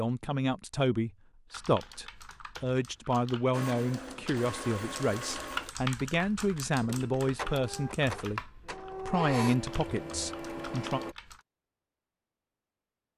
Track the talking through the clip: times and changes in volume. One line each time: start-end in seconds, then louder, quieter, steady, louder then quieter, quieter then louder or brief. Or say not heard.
0.0-8.4 steady
9.1-11.0 brief.